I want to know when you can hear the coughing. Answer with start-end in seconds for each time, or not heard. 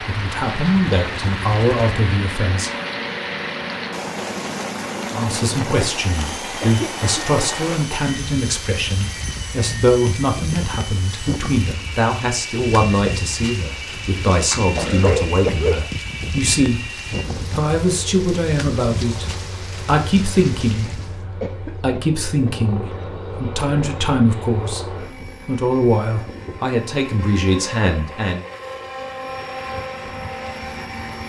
6.6-7.1, 14.5-15.9, 21.4-22.6.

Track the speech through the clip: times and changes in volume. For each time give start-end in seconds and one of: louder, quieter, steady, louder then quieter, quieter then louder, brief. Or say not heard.
0.1-2.7 brief
5.1-16.9 steady
17.5-28.4 steady.